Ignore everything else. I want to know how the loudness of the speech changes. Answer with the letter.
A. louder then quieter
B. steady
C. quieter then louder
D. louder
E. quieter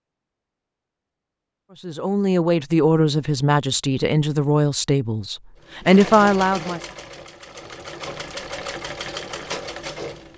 C.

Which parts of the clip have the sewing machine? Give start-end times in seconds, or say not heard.
5.6-10.3.